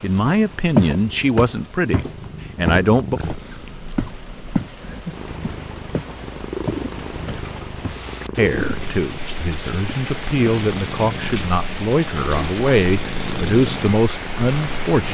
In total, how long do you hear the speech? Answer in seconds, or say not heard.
10 s.